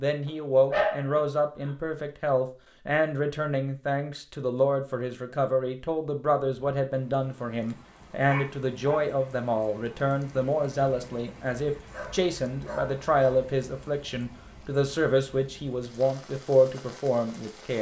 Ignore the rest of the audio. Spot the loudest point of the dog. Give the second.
1 s.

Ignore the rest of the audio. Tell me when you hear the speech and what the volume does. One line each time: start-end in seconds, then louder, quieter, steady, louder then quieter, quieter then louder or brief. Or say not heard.
0.0-17.7 steady.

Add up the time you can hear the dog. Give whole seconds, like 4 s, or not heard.
4 s.